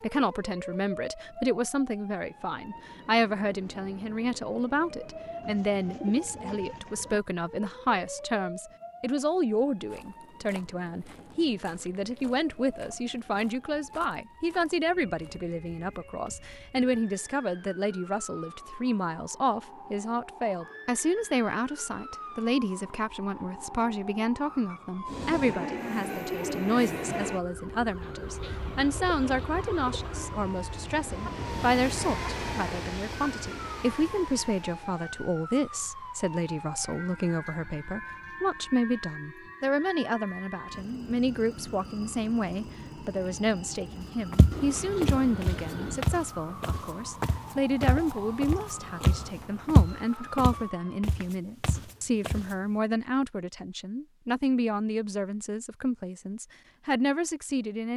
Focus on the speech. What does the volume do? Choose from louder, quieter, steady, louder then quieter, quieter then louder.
steady.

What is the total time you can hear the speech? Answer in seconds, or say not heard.
58 s.